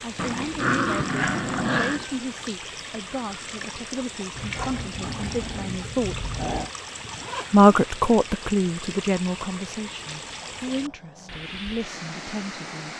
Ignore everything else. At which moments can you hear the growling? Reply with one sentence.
The growling can be heard from 0.1 to 2.0 s, from 4.3 to 6.7 s and from 10.0 to 11.3 s.